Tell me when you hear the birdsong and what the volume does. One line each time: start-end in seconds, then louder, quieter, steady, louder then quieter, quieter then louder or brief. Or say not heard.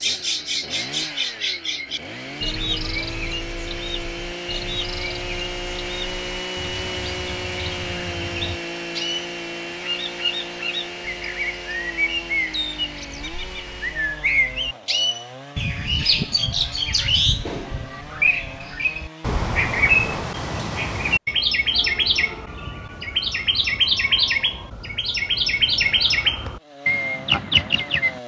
0.0-28.2 louder.